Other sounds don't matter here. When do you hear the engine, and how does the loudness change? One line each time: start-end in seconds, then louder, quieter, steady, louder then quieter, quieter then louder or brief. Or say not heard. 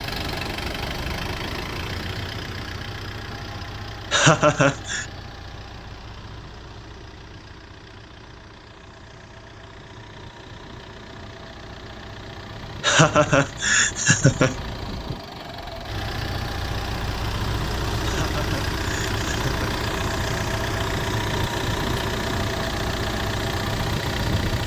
0.0-24.6 quieter then louder.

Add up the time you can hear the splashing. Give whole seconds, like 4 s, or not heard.
not heard.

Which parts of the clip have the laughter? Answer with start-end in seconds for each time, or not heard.
4.1-5.0, 12.8-14.6, 18.0-19.7.